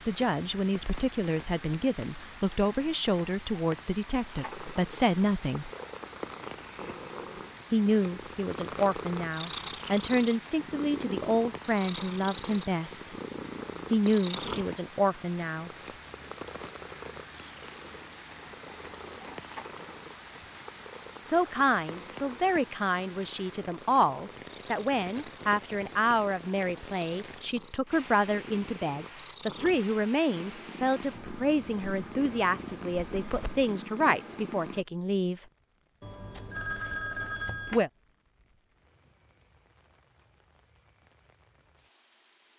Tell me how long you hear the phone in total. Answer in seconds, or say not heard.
2 s.